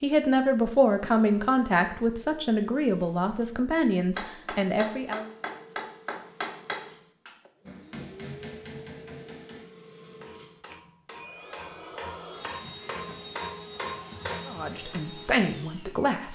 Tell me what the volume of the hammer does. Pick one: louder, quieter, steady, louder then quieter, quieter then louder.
quieter then louder.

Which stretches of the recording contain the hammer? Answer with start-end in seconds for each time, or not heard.
4.2-14.5.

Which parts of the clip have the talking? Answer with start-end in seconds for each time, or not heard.
0.0-5.2, 14.4-16.2.